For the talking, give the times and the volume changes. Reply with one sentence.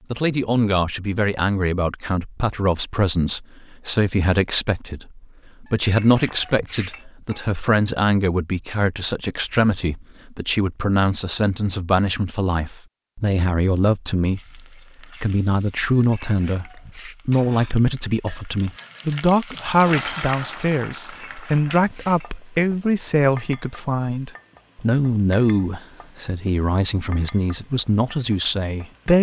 You can hear the talking from 0.1 to 29.1 s, at a steady volume.